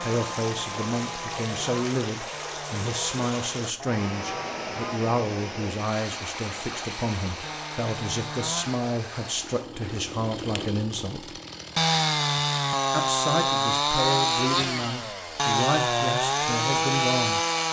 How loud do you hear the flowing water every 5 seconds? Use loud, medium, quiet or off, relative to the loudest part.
loud, loud, off, off.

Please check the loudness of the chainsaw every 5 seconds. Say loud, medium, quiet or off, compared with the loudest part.
quiet, quiet, loud, loud.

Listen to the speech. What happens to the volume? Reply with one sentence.
The volume of the speech stays about the same.